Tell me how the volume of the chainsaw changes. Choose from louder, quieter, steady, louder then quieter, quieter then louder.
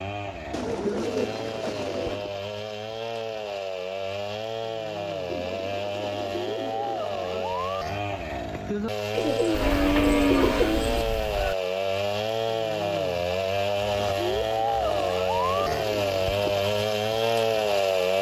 louder.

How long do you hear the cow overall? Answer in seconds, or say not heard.
2 s.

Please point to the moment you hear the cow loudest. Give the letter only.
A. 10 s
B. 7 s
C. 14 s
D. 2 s
A.